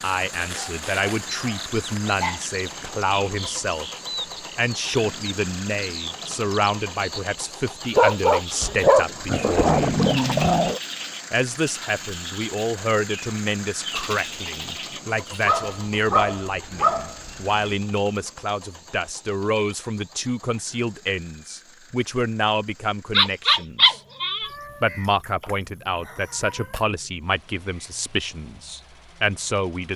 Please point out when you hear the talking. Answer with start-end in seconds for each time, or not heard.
0.0-3.9, 4.5-9.8, 11.3-24.0, 24.8-29.9.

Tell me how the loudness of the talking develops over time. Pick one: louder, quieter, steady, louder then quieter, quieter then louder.
steady.